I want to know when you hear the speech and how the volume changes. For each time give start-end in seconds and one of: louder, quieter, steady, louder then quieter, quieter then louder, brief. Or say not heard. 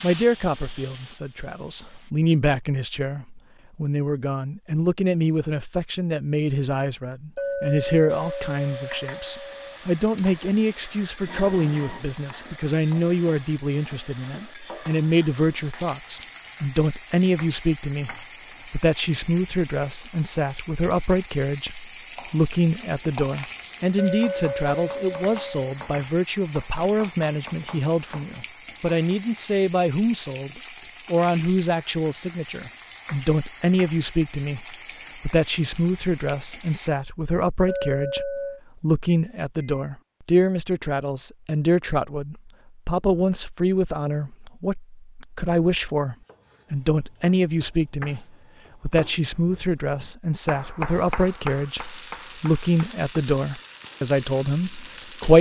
0.0-55.3 steady.